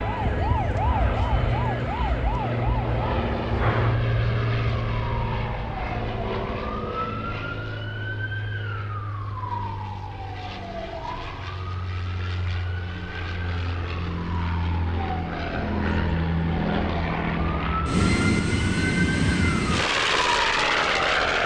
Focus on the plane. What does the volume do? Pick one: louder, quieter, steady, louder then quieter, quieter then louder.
quieter then louder.